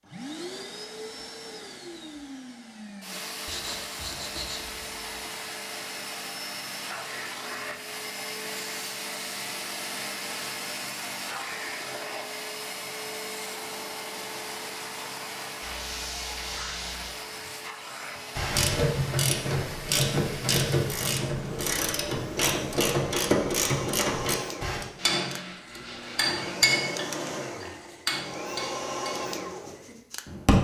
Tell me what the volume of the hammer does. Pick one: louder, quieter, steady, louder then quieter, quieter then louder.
quieter.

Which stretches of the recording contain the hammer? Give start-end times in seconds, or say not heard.
25.0-30.6.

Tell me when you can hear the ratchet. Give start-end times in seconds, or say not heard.
18.4-24.9.